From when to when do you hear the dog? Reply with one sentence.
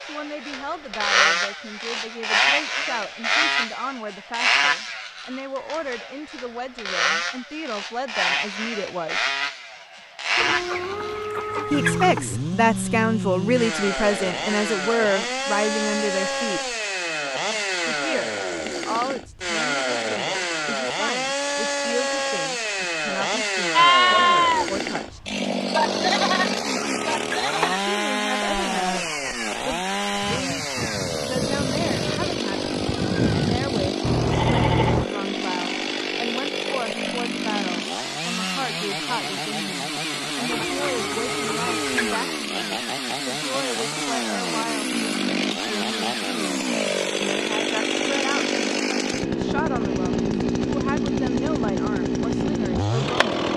You can't hear the dog here.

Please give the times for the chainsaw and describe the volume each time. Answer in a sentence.
The chainsaw can be heard from 0.0 to 53.5 s, at a steady volume.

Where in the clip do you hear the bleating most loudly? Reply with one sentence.
The loudest moment of the bleating is at 24 seconds.